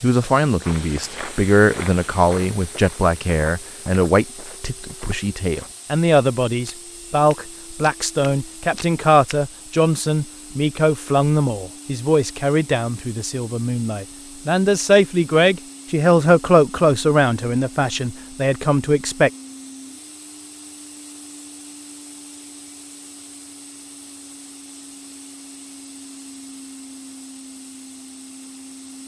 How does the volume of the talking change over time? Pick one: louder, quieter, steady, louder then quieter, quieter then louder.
steady.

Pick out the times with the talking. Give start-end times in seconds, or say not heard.
0.0-19.3.